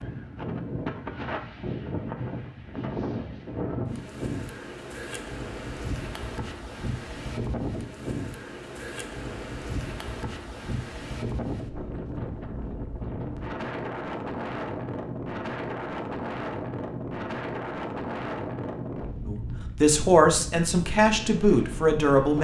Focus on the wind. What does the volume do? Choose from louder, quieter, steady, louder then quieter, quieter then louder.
steady.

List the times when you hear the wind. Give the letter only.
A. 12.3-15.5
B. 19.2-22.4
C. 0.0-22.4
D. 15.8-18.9
C.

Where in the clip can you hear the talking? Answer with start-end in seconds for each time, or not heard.
19.2-22.4.